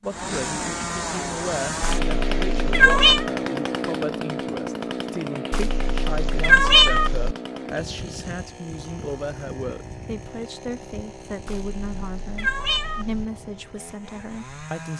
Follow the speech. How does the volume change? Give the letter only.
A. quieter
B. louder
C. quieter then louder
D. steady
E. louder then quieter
D.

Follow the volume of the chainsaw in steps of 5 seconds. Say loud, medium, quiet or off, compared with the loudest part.
loud, medium, quiet.